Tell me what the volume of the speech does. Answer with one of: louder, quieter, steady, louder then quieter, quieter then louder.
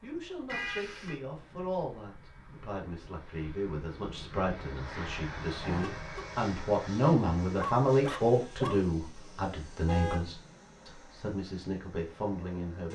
louder then quieter.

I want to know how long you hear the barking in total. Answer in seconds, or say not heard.
2 s.